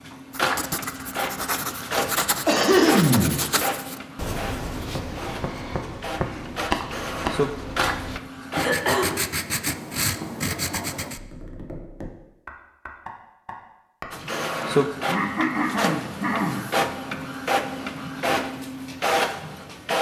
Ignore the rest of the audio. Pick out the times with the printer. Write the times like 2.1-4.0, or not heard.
0.0-8.8, 14.1-19.9.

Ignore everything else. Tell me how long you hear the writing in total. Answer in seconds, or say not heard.
11 s.